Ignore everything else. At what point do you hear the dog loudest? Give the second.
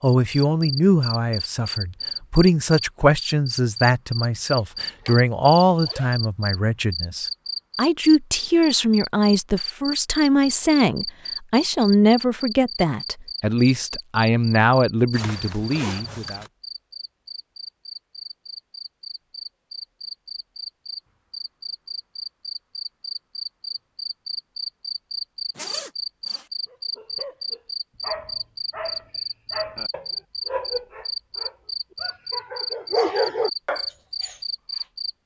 33 s.